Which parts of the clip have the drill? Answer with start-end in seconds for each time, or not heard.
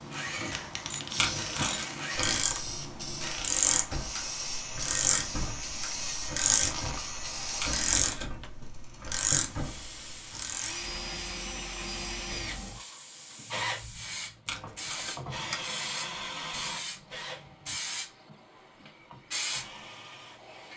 0.0-20.7.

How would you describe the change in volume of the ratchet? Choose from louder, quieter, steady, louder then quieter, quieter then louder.
steady.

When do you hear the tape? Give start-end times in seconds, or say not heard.
1.1-1.9, 7.6-8.3, 14.4-15.7.